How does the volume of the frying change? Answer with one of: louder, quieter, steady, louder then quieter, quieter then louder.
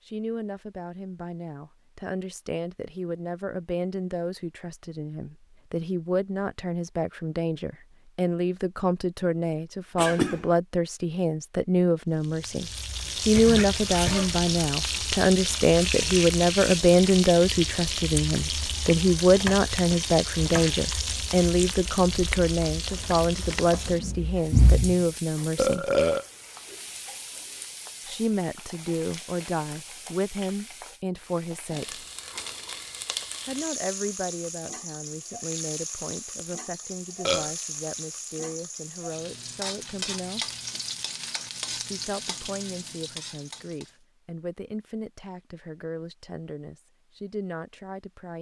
quieter then louder.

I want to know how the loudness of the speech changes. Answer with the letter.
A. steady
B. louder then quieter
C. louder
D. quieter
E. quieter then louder
B.